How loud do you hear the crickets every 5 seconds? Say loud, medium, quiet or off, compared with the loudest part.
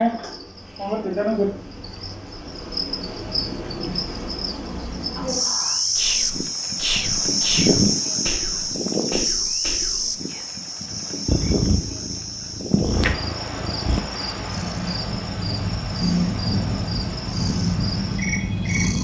medium, loud, medium, medium.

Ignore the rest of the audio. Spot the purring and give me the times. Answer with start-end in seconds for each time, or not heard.
11.2-18.9.